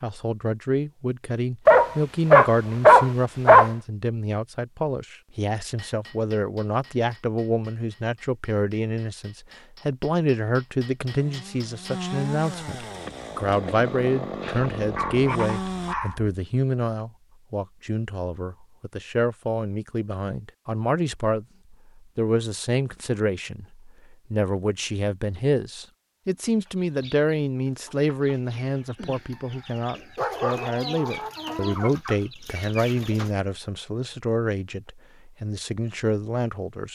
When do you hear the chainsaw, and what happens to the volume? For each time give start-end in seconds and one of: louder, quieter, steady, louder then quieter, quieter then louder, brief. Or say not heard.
11.1-15.9 steady.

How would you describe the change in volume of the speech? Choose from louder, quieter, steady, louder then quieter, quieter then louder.
steady.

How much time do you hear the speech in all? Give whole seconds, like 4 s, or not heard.
37 s.